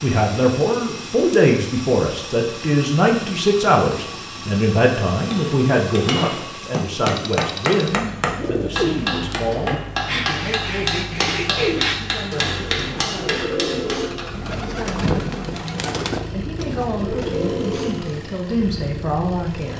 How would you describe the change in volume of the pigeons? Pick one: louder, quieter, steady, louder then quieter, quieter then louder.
steady.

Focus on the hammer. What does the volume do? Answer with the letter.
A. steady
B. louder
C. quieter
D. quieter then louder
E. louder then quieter
A.